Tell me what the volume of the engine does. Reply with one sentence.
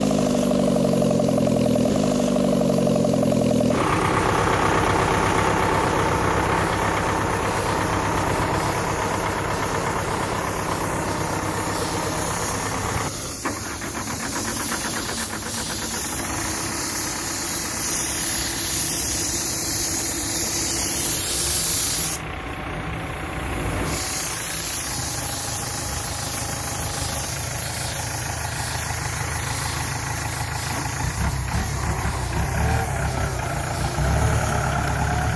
The loudness of the engine goes down, then up.